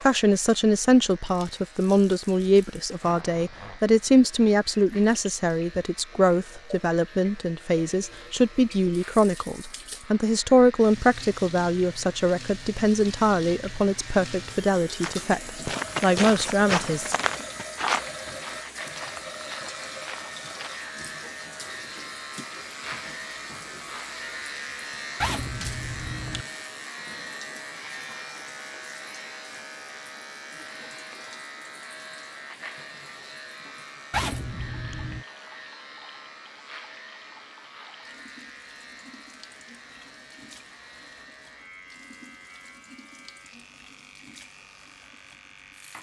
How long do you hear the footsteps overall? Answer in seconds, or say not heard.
6 s.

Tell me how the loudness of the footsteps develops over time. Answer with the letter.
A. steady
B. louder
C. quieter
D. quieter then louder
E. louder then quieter
C.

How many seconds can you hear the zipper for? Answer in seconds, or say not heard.
3 s.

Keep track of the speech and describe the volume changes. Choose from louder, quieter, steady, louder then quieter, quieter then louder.
steady.